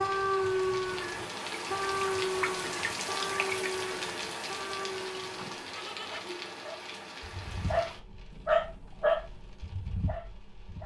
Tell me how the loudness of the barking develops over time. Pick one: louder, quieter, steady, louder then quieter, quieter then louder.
quieter then louder.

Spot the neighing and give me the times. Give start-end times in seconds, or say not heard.
5.3-6.2.